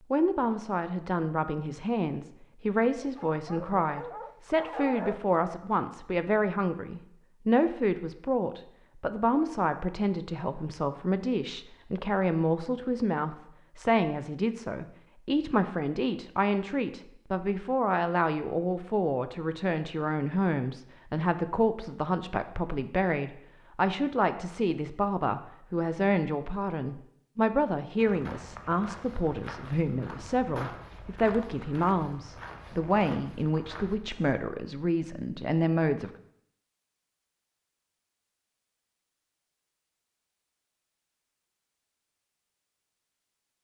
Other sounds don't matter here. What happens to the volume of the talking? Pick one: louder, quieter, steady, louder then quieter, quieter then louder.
steady.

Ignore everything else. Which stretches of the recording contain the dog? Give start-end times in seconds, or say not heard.
3.0-5.2.